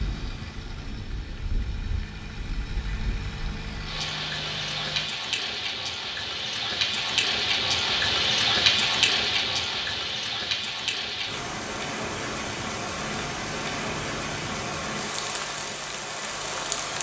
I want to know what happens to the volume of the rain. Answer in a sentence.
The volume of the rain goes up, then down.